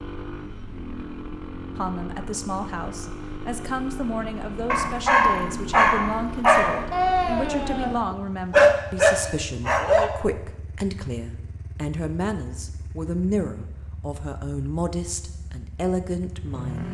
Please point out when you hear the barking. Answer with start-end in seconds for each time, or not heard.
4.7-10.1.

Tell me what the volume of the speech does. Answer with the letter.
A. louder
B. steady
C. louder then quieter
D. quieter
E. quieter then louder
B.